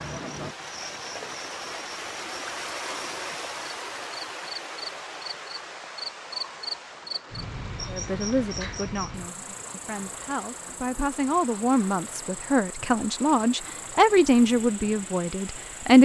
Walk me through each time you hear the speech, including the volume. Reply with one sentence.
You can hear the speech from 7.8 to 16.0 s, getting louder.